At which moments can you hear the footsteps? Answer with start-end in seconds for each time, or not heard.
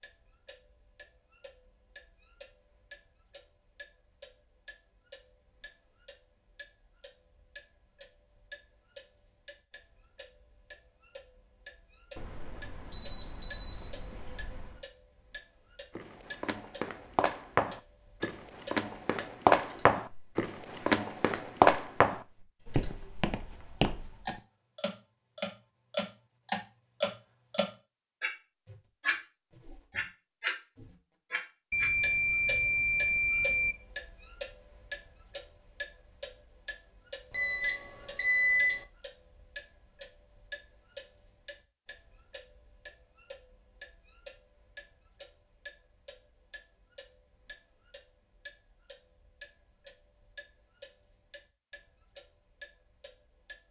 15.9-24.4.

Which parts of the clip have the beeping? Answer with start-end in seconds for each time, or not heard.
12.2-14.8, 31.7-33.8, 37.3-38.9.